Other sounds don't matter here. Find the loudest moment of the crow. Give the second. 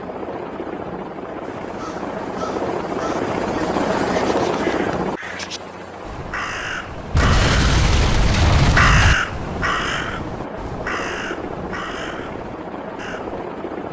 9 s.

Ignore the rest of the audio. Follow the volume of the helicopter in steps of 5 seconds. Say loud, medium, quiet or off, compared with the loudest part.
loud, medium, medium.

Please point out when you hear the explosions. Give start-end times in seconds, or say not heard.
7.1-9.2.